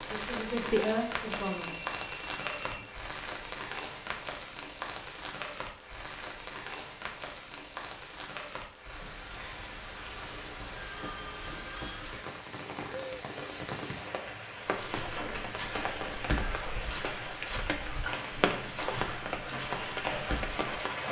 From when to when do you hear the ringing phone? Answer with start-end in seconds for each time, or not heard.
1.3-2.9, 10.1-12.1, 14.7-15.8.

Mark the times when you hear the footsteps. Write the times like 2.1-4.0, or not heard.
14.7-20.6.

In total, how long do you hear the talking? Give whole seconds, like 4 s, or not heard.
2 s.